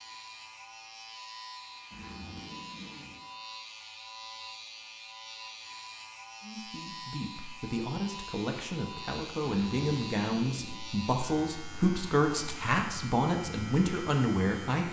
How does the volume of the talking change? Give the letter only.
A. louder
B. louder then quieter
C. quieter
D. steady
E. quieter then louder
A.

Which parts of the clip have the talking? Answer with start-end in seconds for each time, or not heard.
6.4-14.8.